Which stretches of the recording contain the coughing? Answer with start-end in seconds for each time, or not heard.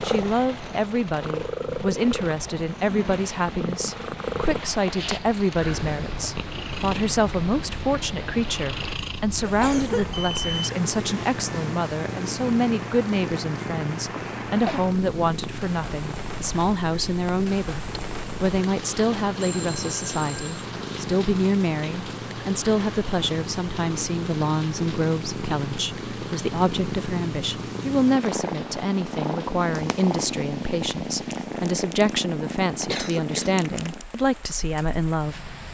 9.4-10.2, 14.1-14.8, 32.9-33.6.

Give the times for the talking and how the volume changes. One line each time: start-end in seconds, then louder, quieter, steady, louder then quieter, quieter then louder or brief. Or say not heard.
0.0-35.5 steady.